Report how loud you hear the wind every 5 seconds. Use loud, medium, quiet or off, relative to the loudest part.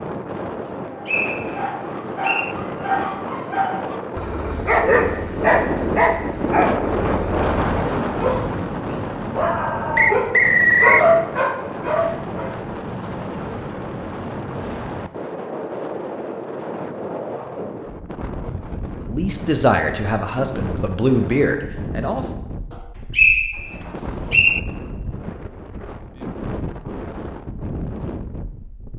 medium, loud, medium, medium, medium, medium.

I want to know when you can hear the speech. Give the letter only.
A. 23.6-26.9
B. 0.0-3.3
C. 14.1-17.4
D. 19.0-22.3
D.